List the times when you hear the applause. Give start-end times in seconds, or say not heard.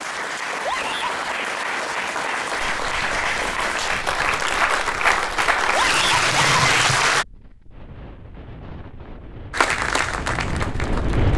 0.0-7.2, 9.5-11.3.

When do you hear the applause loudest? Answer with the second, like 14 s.
7 s.